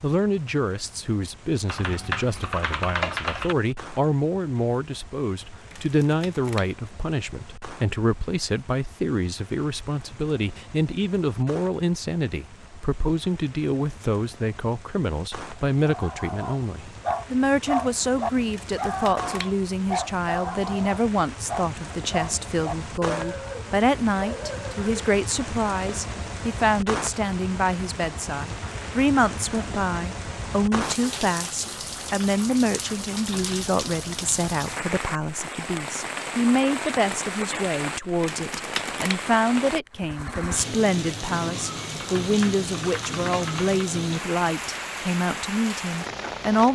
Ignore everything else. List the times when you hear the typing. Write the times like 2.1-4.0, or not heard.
1.6-3.5, 42.0-43.9.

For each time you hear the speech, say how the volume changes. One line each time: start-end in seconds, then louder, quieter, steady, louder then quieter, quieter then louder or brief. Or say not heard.
0.0-46.7 steady.